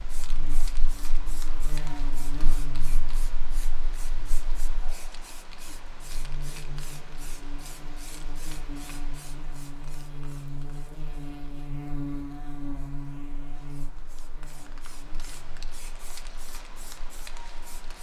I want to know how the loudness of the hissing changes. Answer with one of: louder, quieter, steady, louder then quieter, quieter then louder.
quieter then louder.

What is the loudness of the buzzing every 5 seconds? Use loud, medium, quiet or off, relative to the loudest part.
medium, medium, loud, quiet.